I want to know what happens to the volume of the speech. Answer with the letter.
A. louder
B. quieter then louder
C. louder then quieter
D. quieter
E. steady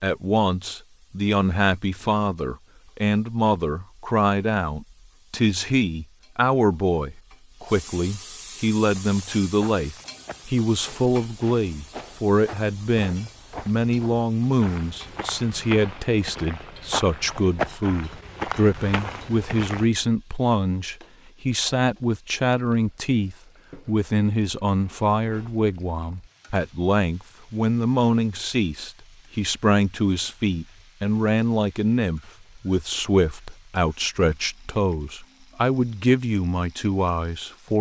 E.